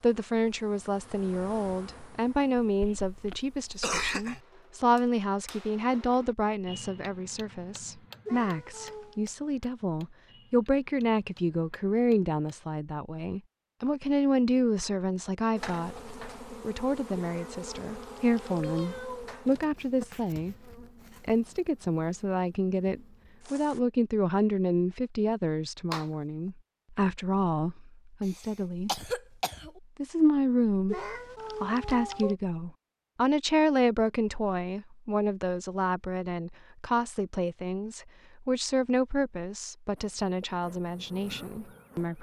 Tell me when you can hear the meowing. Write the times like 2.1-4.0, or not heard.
8.2-9.2, 17.1-19.3, 30.9-32.4.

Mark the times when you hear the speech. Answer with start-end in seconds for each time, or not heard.
0.0-20.6, 21.2-29.1, 29.9-42.1.